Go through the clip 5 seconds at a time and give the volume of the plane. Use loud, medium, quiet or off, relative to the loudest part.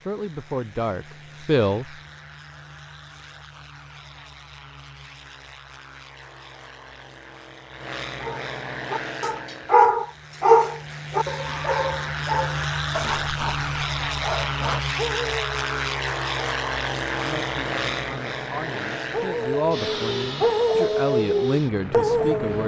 quiet, medium, loud, loud, medium.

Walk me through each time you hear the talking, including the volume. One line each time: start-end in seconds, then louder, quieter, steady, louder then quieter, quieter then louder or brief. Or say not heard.
0.0-1.9 brief
17.2-22.6 louder.